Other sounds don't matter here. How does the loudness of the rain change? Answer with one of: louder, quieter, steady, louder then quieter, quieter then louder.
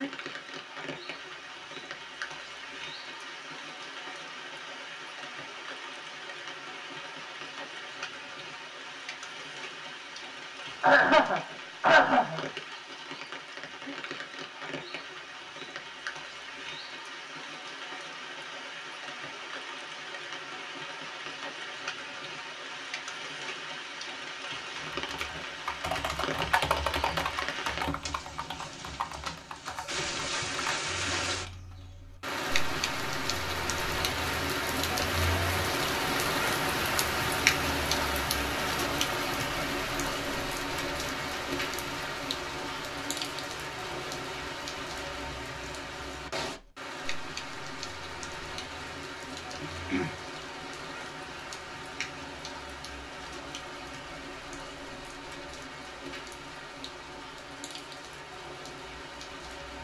louder then quieter.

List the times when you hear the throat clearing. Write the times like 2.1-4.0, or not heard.
10.8-12.4, 49.6-50.1.